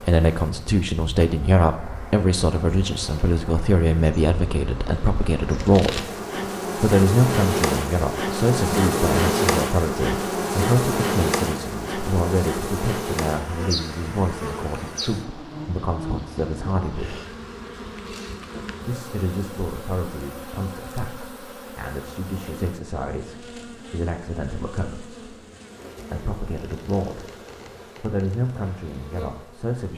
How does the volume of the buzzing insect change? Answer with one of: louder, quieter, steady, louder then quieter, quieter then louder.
louder then quieter.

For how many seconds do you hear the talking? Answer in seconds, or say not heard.
26 s.